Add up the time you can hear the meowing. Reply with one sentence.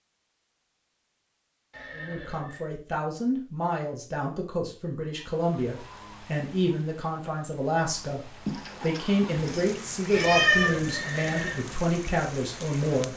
You can hear the meowing for 2 seconds altogether.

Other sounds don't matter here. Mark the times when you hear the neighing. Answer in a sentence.
You can hear the neighing from 1.7 to 2.6 s and from 10.1 to 11.7 s.